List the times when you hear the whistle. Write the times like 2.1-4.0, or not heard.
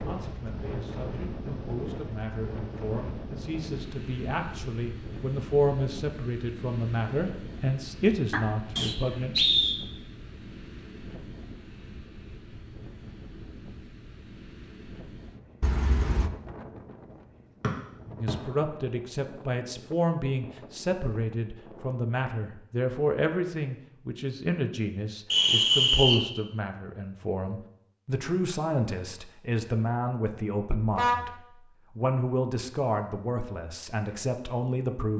8.8-9.8, 17.6-18.3, 25.3-26.2.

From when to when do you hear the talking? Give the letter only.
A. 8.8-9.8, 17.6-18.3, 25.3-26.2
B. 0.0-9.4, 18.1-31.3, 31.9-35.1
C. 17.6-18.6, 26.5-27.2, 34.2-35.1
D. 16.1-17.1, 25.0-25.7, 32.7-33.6
B.